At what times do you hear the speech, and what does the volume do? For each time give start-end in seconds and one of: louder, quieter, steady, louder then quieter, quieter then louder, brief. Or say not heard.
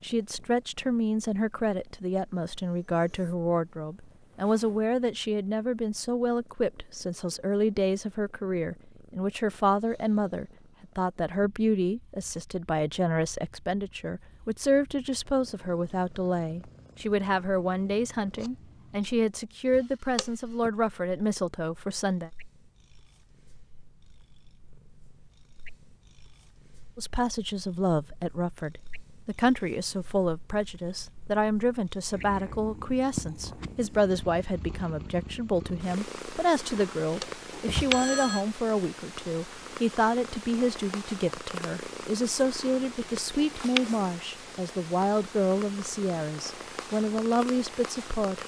0.0-22.3 steady
26.9-48.4 steady.